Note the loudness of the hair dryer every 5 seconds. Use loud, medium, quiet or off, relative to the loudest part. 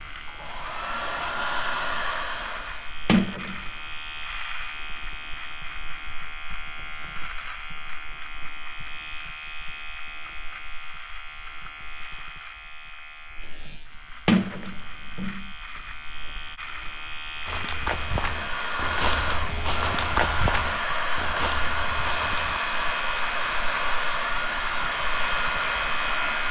loud, off, off, loud, loud, loud.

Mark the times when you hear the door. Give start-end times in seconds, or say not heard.
3.0-3.6, 14.2-15.4.